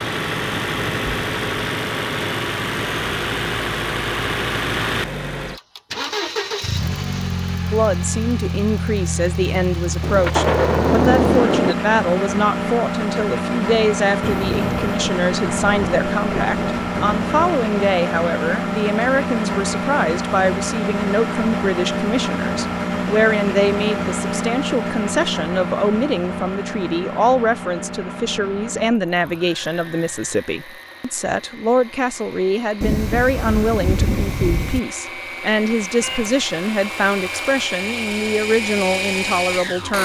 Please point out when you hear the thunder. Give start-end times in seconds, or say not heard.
10.0-11.8, 14.9-17.6, 32.8-34.8.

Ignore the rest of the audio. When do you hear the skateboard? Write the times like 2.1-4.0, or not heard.
not heard.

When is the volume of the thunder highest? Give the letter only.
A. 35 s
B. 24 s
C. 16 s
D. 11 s
D.